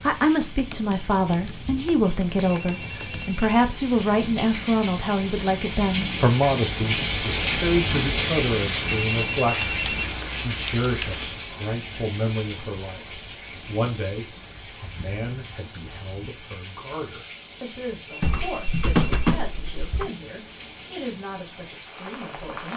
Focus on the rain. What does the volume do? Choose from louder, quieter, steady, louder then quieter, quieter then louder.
louder then quieter.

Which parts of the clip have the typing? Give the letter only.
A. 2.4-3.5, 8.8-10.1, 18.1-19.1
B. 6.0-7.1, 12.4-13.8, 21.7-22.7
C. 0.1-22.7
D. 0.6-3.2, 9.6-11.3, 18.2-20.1
D.